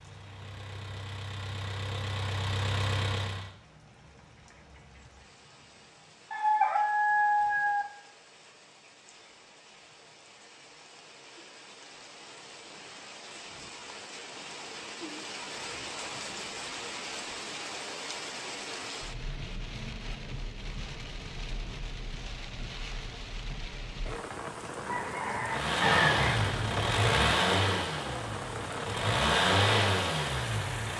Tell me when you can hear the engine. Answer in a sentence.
You can hear the engine from 0.0 to 3.5 s and from 25.4 to 30.9 s.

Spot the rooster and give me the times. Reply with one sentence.
The rooster can be heard from 6.3 to 7.8 s and from 24.9 to 26.4 s.